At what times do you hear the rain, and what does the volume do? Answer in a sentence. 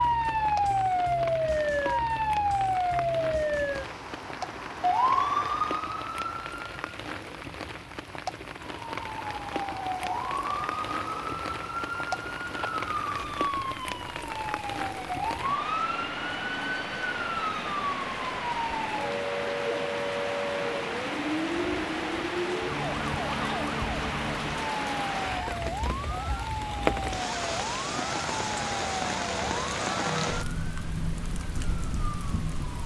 The rain can be heard from 0.0 to 32.8 s, getting louder.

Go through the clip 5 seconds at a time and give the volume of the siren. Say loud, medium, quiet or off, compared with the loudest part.
loud, loud, medium, medium, medium, medium, medium.